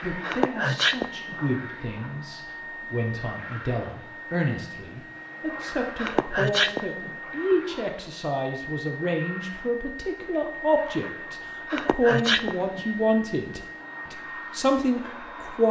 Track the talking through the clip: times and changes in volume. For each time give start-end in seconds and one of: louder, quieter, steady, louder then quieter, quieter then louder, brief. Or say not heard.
0.0-15.6 louder.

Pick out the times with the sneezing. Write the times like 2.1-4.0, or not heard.
0.2-1.4, 6.0-7.2, 11.7-12.8.